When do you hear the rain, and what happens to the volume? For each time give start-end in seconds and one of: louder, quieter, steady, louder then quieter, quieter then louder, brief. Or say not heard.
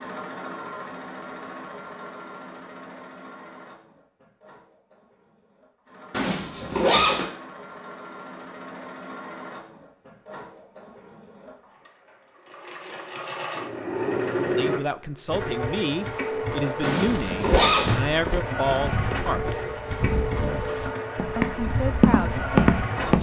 not heard.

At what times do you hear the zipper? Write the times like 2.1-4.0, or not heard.
6.1-7.2, 16.8-18.0.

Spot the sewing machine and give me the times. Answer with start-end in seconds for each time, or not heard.
0.0-23.1.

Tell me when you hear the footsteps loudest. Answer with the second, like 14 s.
23 s.